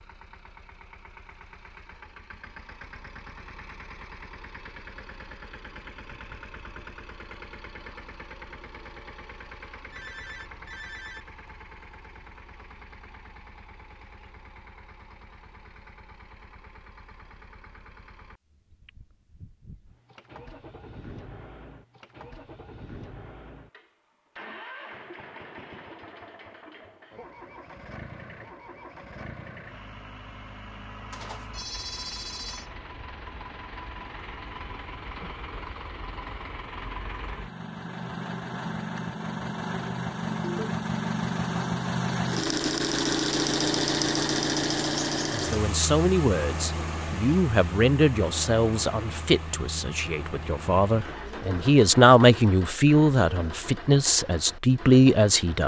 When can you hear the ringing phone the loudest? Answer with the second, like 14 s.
32 s.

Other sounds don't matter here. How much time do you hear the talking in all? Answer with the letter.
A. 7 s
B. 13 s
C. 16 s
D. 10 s
D.